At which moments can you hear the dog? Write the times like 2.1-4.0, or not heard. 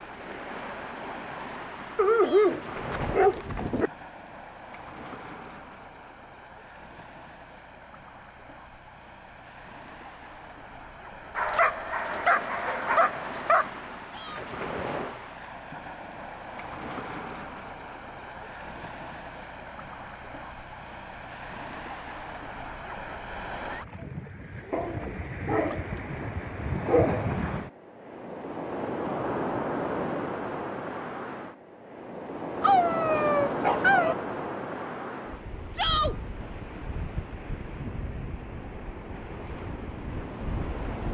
1.9-3.9, 11.3-13.7, 24.7-27.3, 32.6-34.1.